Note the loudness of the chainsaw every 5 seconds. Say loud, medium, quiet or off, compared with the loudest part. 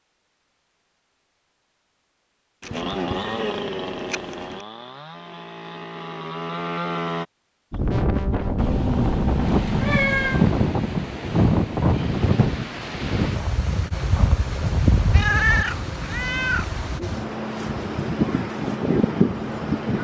loud, loud, off, off.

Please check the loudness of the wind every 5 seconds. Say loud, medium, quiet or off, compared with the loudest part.
off, loud, loud, loud.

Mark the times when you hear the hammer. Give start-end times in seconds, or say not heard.
not heard.